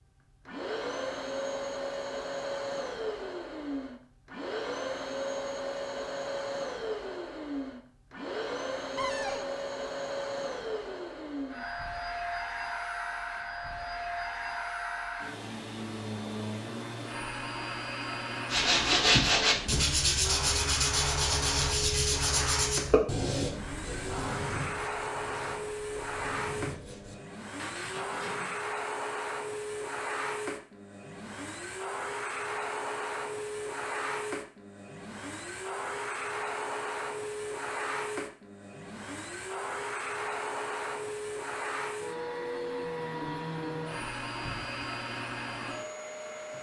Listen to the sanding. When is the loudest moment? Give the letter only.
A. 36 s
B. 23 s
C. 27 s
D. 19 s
D.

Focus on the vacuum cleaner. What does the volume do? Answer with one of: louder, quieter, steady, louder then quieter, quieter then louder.
steady.